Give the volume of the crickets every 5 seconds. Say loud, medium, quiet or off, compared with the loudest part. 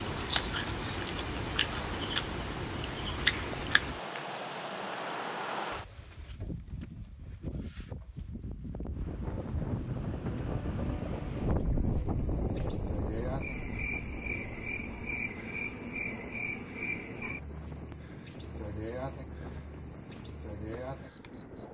loud, medium, medium, medium, medium.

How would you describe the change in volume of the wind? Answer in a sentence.
The volume of the wind goes down.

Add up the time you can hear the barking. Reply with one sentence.
You can't hear the barking here.